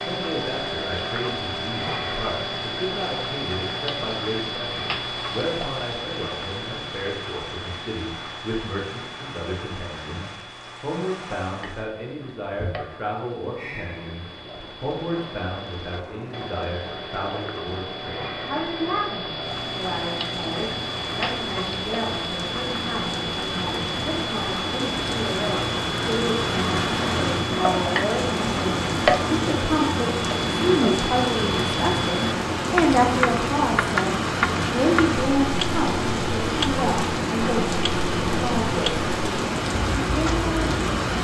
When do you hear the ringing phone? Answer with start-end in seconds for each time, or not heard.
not heard.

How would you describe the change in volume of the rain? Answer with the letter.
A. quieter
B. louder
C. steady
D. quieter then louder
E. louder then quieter
B.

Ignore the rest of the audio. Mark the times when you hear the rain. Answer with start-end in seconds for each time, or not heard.
0.0-41.1.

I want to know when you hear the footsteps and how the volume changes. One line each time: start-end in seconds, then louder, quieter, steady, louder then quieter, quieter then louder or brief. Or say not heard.
not heard.